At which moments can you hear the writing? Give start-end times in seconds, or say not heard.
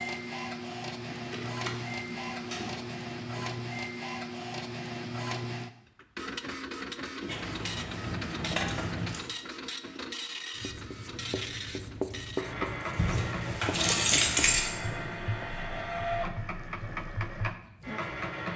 10.6-17.6.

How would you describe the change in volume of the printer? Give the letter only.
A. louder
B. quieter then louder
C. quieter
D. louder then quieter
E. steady
E.